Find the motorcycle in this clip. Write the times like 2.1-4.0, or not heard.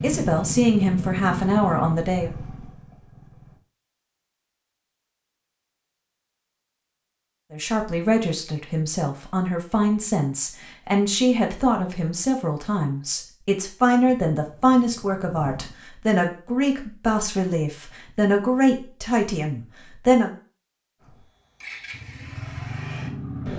0.0-3.6, 14.1-15.8, 21.0-23.5.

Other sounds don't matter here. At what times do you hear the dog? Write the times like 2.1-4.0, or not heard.
not heard.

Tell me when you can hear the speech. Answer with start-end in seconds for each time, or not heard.
0.0-2.3, 7.5-20.3.